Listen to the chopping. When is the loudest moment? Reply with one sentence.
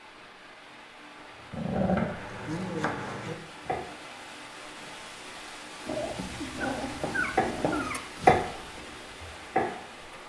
The volume of the chopping peaks at 8 seconds.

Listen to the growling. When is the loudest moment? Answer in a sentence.
The loudest moment of the growling is at 2 seconds.